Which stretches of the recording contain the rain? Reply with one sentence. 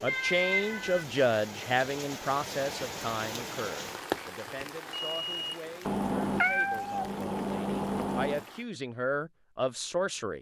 You can hear the rain from 0.0 to 8.7 s.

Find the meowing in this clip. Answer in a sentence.
You can hear the meowing from 0.1 to 1.1 s and from 5.8 to 8.4 s.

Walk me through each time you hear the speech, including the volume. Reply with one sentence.
The speech can be heard from 0.0 to 10.3 s, getting quieter then louder.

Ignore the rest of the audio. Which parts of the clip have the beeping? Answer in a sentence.
You can hear the beeping from 4.9 to 5.8 s.